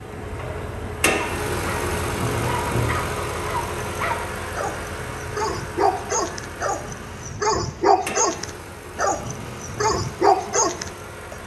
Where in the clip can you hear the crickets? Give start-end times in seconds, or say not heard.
not heard.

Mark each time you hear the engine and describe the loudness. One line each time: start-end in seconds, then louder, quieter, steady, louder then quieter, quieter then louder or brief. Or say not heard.
0.0-11.4 quieter.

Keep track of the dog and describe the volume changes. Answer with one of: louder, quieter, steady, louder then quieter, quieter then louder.
louder.